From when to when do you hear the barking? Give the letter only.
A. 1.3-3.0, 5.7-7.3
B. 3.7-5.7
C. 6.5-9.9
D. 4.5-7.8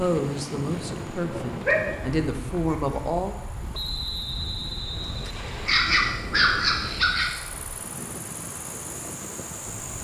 A.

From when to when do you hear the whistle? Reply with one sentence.
You can hear the whistle from 3.7 to 5.7 s.